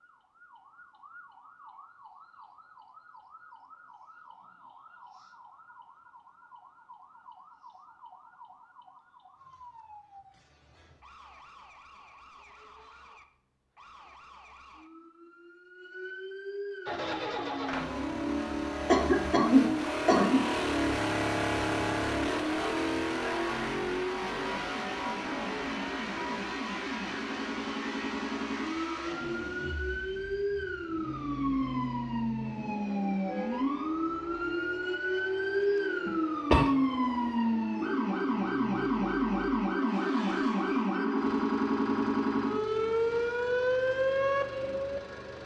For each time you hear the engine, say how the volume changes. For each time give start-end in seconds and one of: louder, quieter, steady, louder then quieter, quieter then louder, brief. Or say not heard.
16.9-45.4 quieter.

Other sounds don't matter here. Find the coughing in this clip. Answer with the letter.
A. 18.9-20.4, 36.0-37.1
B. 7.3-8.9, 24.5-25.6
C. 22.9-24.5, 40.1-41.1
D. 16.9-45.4
A.